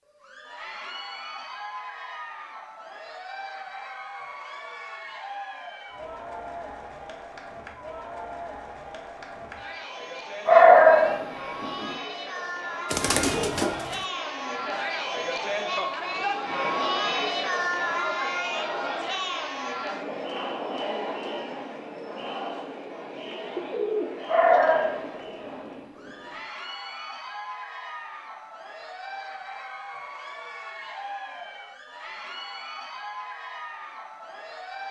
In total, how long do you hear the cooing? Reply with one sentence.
You can hear the cooing for 2 seconds altogether.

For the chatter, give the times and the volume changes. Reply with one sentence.
The chatter can be heard from 0.1 to 34.8 s, getting louder then quieter.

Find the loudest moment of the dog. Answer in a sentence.
The volume of the dog peaks at 11 seconds.